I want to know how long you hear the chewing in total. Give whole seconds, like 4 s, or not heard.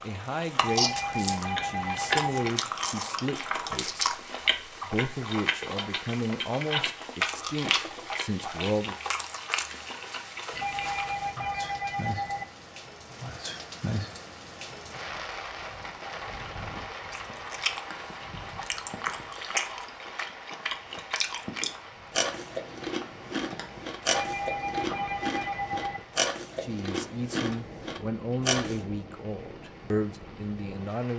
23 s.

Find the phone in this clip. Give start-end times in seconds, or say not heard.
0.6-2.5, 10.5-12.4, 24.1-26.0.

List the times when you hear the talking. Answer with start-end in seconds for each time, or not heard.
0.0-8.9, 26.6-31.1.